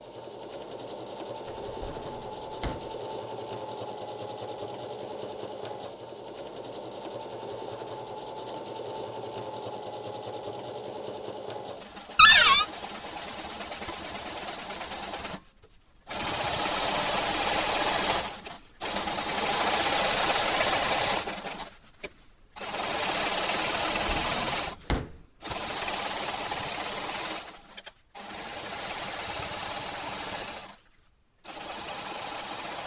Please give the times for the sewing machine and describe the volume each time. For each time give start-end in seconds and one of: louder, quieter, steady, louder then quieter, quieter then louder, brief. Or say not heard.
0.0-32.8 louder then quieter.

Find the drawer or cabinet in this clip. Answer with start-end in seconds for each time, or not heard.
1.6-2.9, 12.2-12.7, 23.7-25.2.